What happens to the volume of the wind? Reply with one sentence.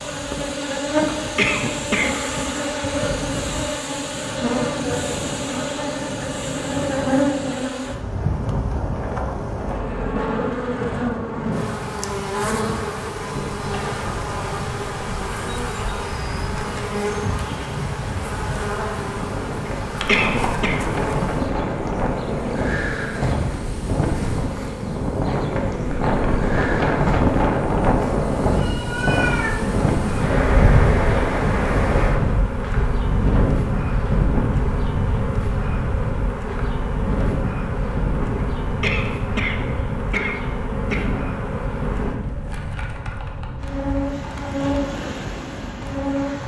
The volume of the wind goes up, then down.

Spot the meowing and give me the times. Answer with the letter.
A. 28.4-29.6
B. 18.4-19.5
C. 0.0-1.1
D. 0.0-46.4
A.